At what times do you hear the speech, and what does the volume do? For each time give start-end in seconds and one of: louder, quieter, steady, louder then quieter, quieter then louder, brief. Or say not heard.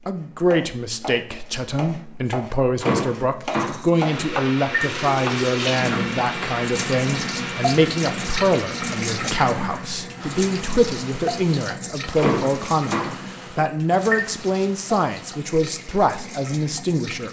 0.1-17.2 steady.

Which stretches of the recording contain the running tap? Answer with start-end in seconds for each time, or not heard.
4.8-17.2.